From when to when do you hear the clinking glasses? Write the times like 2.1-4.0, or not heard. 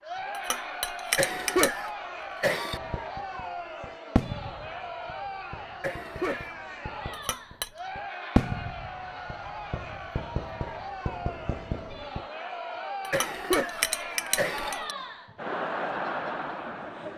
0.3-1.8, 7.1-7.8, 13.0-14.9.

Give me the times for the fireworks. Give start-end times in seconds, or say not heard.
2.7-12.2.